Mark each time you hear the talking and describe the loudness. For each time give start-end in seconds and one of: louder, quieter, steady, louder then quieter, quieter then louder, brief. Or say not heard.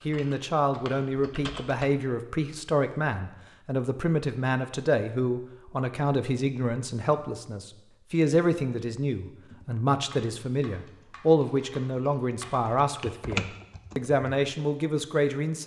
0.1-15.6 steady.